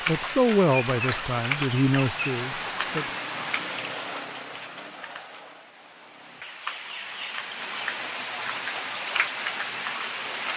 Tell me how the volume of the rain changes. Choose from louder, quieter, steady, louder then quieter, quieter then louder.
quieter then louder.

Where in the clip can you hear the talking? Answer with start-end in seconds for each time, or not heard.
0.1-3.1.